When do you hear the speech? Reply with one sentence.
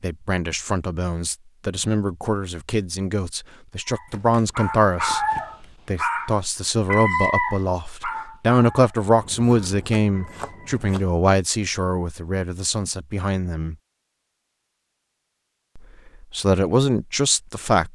You can hear the speech from 0.0 to 5.2 s, from 5.8 to 13.8 s and from 15.8 to 17.9 s.